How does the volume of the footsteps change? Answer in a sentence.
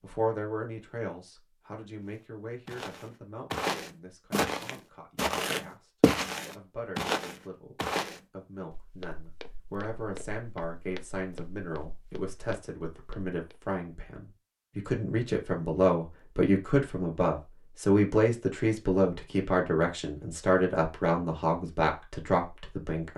The volume of the footsteps goes down.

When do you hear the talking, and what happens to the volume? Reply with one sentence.
The talking can be heard from 0.0 to 5.9 s, getting quieter; and from 6.5 to 23.1 s, getting louder.